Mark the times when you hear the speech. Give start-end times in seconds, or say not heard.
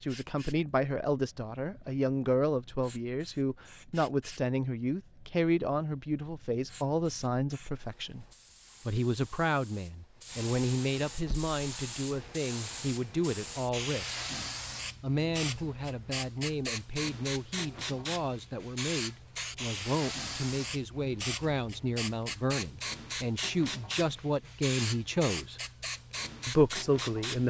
0.0-8.2, 8.8-14.2, 15.0-25.6, 26.4-27.4.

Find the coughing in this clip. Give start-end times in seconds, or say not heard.
not heard.